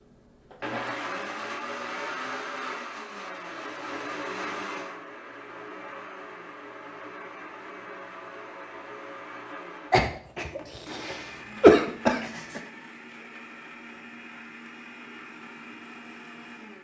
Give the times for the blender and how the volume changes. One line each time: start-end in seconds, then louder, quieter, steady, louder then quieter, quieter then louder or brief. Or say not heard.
0.0-16.7 quieter.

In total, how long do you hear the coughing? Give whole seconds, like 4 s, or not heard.
3 s.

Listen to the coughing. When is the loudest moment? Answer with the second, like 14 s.
12 s.